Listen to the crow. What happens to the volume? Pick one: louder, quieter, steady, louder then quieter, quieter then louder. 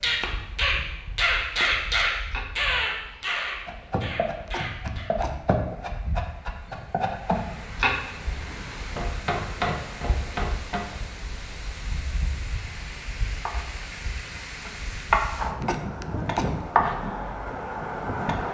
quieter.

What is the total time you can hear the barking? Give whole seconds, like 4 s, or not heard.
not heard.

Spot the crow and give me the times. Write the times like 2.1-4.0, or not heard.
0.0-5.1.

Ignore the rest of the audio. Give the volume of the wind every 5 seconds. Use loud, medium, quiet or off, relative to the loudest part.
quiet, medium, medium, loud.